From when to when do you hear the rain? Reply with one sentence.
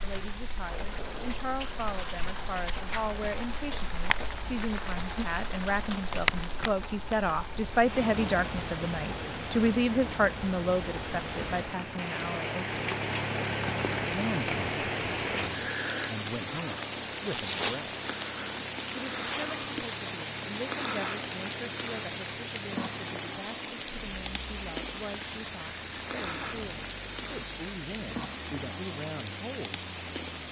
You can hear the rain from 0.0 to 30.4 s.